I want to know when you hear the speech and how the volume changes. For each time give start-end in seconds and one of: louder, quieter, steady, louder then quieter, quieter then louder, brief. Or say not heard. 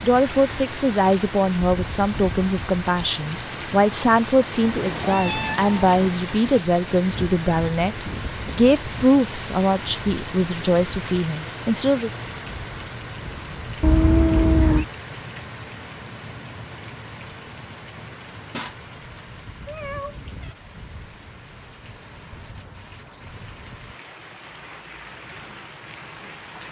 0.0-12.2 steady.